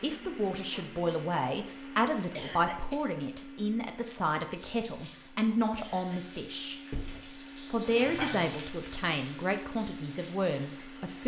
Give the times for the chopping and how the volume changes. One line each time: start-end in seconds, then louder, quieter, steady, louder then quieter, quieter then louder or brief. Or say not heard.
not heard.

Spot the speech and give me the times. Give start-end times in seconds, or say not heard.
0.0-6.8, 7.7-11.2.